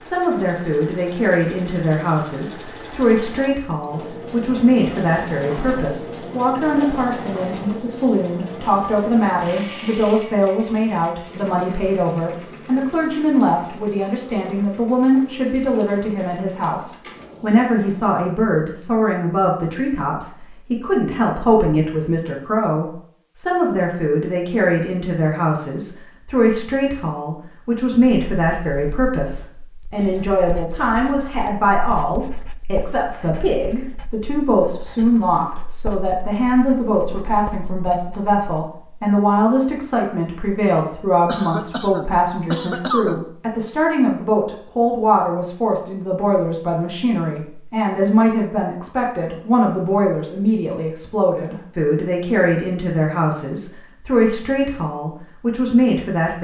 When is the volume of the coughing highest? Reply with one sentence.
The volume of the coughing peaks at 43 seconds.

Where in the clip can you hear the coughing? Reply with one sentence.
You can hear the coughing from 41.2 to 43.2 s.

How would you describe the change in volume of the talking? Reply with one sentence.
The volume of the talking stays about the same.